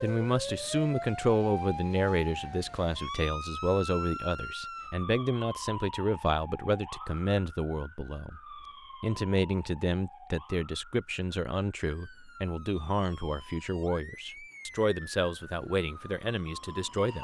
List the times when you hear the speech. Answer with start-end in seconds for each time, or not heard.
0.0-8.4, 9.0-17.2.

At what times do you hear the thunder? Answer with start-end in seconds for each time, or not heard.
not heard.